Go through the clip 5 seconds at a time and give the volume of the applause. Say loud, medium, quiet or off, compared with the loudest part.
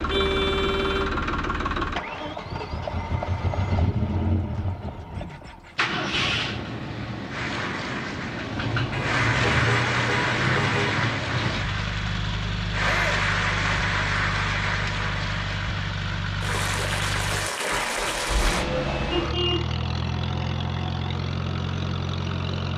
off, loud, loud, loud, off.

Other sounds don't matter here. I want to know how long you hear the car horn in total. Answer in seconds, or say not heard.
4 s.